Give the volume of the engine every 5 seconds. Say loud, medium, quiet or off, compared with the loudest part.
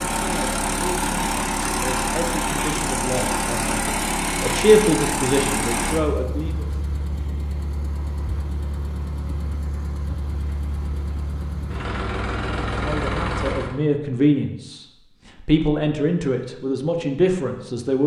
loud, medium, medium, off.